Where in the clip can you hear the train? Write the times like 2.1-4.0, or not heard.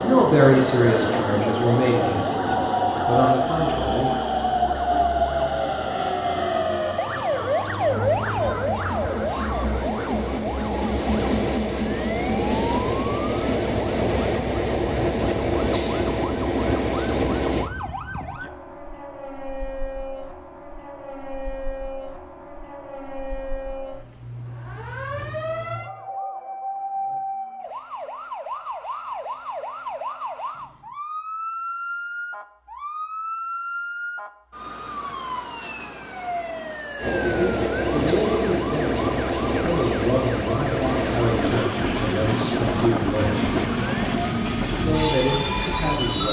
0.0-17.7, 37.0-46.2.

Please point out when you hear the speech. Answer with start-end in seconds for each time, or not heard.
0.0-4.4, 37.2-43.5, 44.7-46.2.